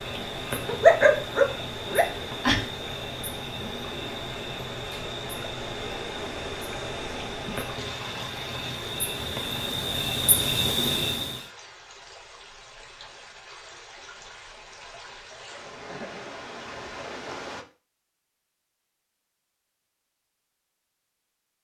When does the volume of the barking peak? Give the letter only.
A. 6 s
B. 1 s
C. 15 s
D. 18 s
B.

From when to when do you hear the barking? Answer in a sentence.
You can hear the barking from 0.7 to 2.6 s.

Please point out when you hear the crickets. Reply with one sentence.
The crickets can be heard from 0.0 to 11.4 s.